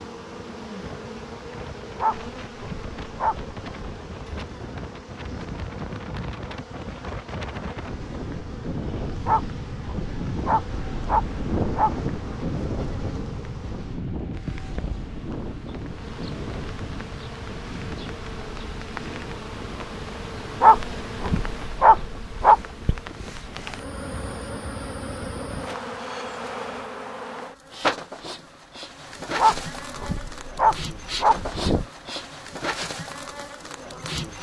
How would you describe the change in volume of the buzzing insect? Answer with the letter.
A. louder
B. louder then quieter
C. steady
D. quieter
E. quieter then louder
A.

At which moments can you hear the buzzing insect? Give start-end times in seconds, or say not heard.
0.0-34.3.